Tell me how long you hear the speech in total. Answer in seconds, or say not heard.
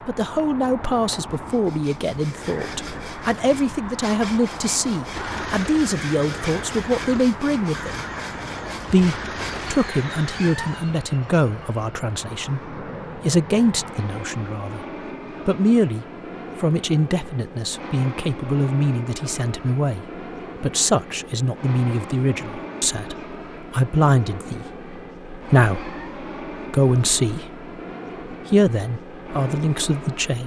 28 s.